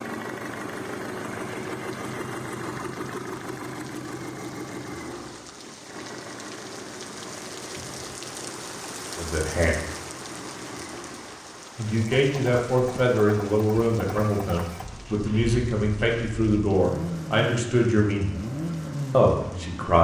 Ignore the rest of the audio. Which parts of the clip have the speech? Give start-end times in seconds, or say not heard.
9.2-9.8, 11.8-18.4, 19.1-19.9.